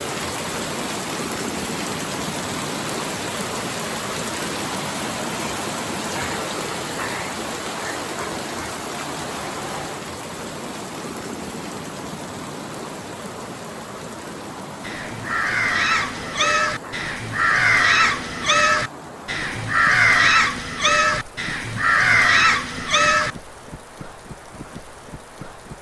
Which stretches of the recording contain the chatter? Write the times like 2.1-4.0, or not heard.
not heard.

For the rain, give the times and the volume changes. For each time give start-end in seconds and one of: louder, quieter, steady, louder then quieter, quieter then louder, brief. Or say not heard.
0.0-25.7 quieter.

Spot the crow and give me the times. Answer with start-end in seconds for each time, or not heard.
14.8-23.3.